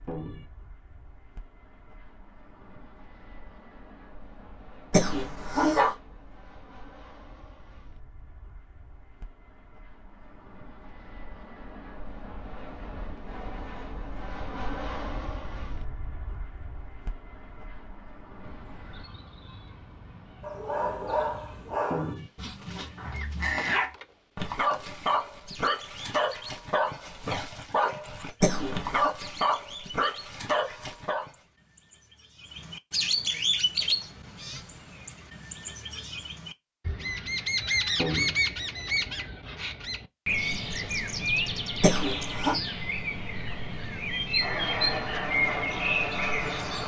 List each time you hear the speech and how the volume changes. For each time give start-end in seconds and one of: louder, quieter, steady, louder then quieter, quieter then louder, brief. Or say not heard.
not heard.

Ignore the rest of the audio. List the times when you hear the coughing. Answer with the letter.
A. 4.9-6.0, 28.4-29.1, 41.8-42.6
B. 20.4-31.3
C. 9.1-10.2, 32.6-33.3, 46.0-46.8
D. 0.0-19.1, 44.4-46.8
A.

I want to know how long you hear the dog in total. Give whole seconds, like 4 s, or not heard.
11 s.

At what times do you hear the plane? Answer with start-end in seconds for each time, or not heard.
0.0-19.1, 44.4-46.8.